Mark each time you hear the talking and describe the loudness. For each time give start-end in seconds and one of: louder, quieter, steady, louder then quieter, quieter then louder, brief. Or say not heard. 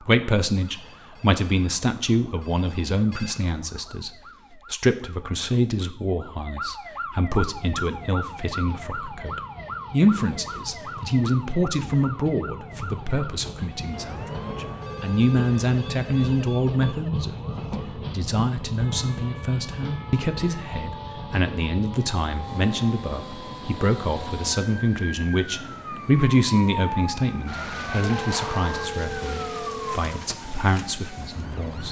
0.0-31.8 steady.